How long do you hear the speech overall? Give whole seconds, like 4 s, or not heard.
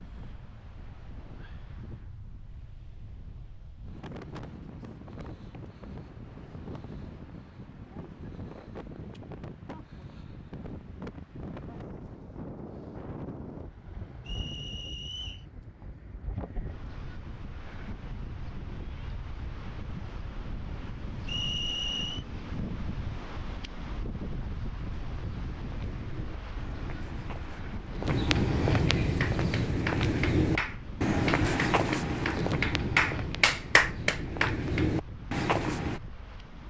not heard.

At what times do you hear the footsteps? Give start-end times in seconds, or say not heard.
24.9-36.0.